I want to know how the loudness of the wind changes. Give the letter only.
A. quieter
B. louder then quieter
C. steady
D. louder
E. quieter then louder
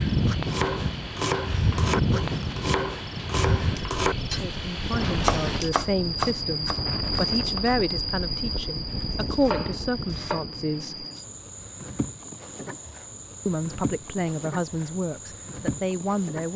A.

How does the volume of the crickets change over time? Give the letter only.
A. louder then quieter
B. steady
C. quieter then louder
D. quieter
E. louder
A.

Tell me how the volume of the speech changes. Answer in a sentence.
The volume of the speech stays about the same.